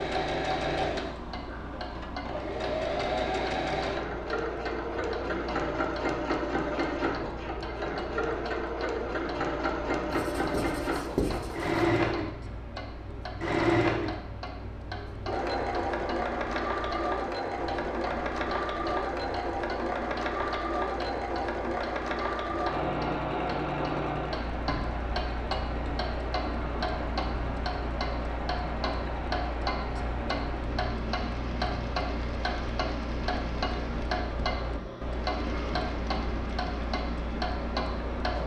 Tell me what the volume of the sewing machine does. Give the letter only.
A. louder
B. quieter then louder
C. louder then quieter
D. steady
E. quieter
E.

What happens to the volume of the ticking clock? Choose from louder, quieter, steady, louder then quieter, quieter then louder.
louder.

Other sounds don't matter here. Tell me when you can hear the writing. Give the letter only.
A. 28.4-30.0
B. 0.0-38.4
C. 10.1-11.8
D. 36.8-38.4
C.